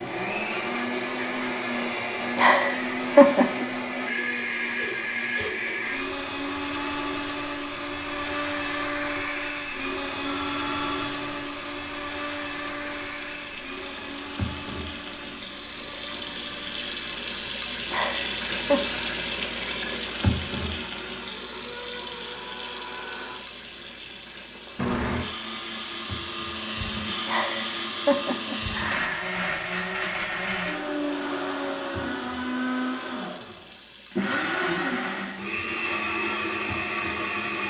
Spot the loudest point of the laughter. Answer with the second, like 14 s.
3 s.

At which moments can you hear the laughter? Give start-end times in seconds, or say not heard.
2.4-3.6, 17.9-18.9, 27.2-29.3.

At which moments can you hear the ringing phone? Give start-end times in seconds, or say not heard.
10.2-11.4.